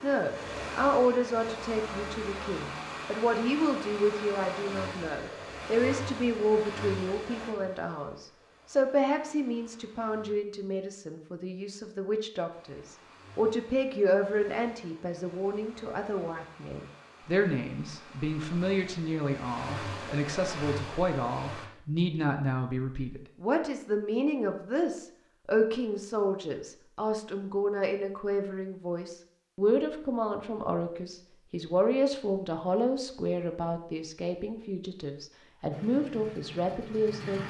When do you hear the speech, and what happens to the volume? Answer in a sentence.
You can hear the speech from 0.0 to 37.4 s, at a steady volume.